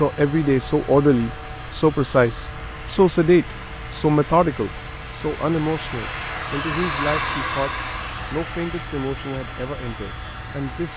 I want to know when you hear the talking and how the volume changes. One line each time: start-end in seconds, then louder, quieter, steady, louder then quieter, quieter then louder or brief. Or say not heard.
0.0-7.7 quieter
8.3-10.9 brief.